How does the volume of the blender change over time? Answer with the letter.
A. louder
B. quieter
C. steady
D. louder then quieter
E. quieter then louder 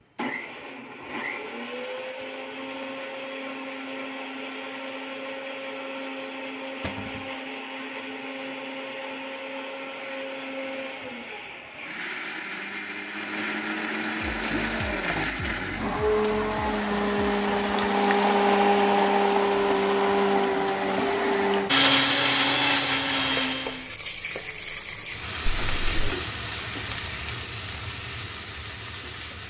A.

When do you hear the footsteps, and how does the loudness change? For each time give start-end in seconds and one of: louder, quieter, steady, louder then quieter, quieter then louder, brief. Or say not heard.
not heard.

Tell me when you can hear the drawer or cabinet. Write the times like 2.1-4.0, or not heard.
6.8-7.2, 25.6-26.1.